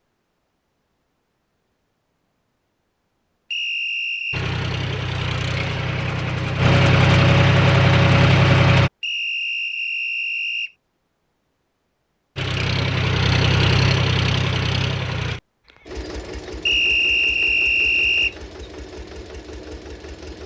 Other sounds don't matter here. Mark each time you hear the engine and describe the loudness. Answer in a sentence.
You can hear the engine from 4.3 to 8.9 s, getting louder; and from 12.3 to 20.4 s, getting quieter.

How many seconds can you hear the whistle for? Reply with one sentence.
The whistle can be heard for 4 seconds in total.